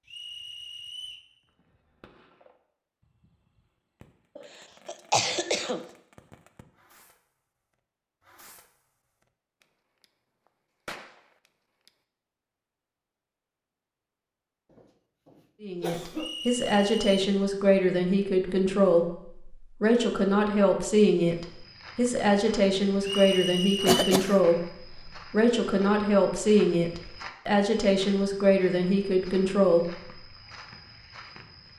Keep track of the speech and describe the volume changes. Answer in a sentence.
The volume of the speech stays about the same.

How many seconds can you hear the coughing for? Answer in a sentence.
The coughing can be heard for 4 seconds in total.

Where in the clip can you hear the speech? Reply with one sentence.
You can hear the speech from 15.6 to 29.9 s.